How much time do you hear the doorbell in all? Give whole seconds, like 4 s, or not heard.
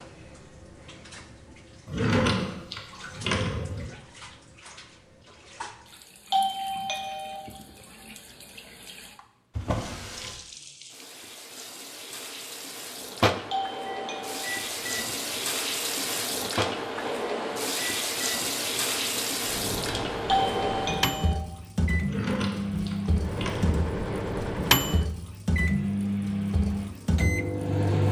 3 s.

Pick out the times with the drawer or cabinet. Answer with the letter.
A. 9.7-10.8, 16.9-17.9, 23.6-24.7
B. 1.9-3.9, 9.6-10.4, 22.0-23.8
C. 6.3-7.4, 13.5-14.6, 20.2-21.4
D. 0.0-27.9
B.